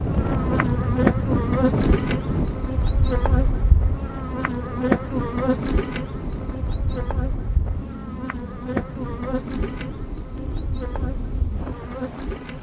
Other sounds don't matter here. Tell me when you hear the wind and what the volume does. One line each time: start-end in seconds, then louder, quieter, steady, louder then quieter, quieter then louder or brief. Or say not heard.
0.0-12.5 quieter.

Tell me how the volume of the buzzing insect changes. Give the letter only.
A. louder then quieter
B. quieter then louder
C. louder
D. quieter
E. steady
D.